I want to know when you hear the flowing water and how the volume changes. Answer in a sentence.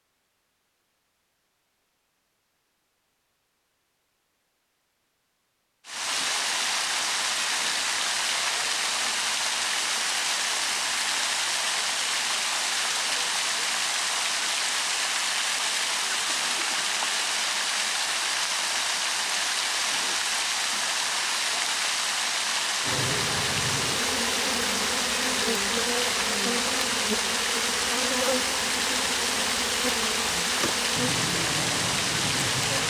The flowing water can be heard from 5.8 to 32.8 s, at a steady volume.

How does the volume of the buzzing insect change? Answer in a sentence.
The loudness of the buzzing insect stays about the same.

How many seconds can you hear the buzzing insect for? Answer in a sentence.
You can hear the buzzing insect for 10 seconds altogether.